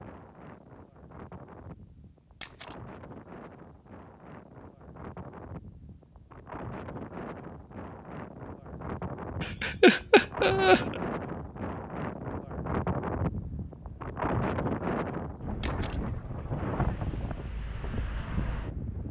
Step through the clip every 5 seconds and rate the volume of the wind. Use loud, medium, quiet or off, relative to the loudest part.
quiet, medium, loud, loud.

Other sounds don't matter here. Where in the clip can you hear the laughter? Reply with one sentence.
You can hear the laughter from 9.4 to 11.0 s.